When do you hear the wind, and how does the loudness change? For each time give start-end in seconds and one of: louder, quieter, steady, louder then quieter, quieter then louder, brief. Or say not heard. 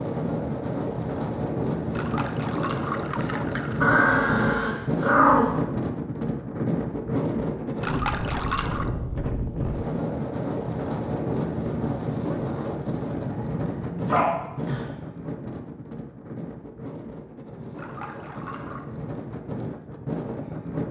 0.0-20.8 quieter.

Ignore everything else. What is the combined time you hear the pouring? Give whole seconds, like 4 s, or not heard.
4 s.